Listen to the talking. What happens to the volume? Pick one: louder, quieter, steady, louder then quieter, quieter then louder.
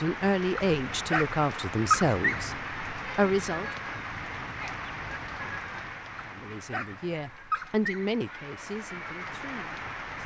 quieter.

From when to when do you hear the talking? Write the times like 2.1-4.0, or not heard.
0.0-3.7, 6.2-10.2.